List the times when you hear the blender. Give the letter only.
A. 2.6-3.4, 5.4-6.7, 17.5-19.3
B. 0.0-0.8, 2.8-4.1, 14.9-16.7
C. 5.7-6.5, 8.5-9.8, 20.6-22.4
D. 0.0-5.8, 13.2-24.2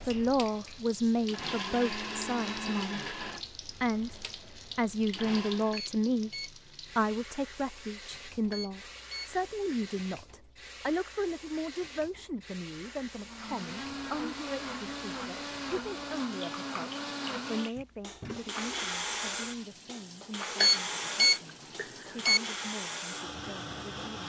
D.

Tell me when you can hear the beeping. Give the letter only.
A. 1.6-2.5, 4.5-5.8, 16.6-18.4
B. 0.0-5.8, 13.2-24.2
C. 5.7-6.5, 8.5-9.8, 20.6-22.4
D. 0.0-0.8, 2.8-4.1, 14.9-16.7
C.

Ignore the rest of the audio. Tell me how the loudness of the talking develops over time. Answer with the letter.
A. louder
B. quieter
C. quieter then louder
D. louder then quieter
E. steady
B.